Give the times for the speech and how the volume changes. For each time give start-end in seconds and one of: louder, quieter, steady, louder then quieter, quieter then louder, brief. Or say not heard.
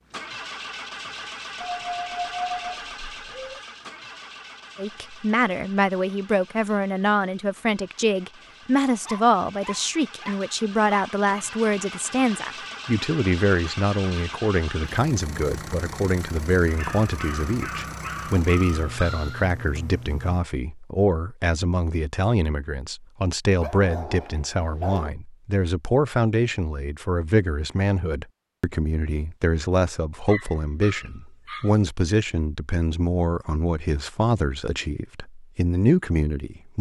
4.8-36.7 steady.